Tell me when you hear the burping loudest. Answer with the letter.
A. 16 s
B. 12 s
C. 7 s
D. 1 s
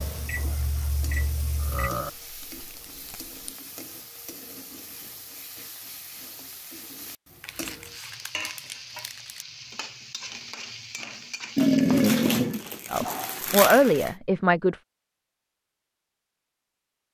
B.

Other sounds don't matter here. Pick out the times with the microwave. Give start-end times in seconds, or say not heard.
0.0-1.9.